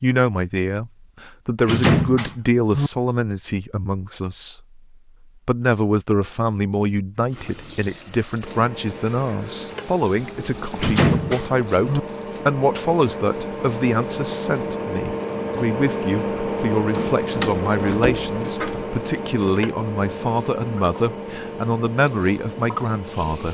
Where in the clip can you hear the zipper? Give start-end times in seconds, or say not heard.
not heard.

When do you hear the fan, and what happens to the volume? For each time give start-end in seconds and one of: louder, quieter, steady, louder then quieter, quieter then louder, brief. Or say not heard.
8.4-23.4 louder then quieter.